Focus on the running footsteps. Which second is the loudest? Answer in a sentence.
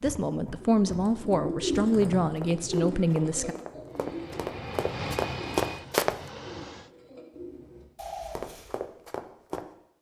The loudest moment of the running footsteps is at 6 seconds.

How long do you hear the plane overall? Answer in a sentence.
The plane can be heard for 3 seconds in total.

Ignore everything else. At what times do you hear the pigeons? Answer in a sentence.
You can hear the pigeons from 0.6 to 8.8 s.